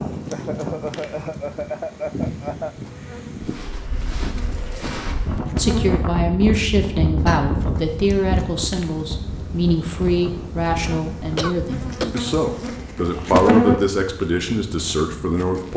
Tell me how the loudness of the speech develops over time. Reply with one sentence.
The volume of the speech stays about the same.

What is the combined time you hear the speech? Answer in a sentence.
You can hear the speech for 10 seconds altogether.